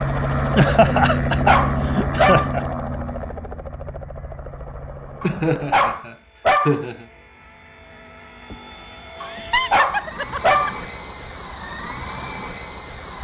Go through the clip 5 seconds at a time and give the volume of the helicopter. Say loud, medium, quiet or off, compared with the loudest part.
loud, quiet, loud.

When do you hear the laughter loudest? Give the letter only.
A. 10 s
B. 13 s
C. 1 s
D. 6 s
C.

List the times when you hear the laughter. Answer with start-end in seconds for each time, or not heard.
0.6-2.6, 5.2-7.0, 9.2-10.8.